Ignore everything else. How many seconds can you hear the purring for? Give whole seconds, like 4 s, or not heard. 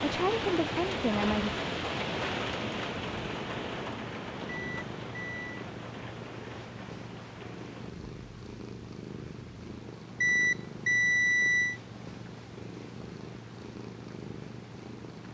15 s.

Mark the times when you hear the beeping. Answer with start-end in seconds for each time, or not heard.
4.5-5.6, 10.2-11.8.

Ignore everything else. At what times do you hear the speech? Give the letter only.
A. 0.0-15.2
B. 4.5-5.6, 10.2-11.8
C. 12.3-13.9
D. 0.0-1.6
D.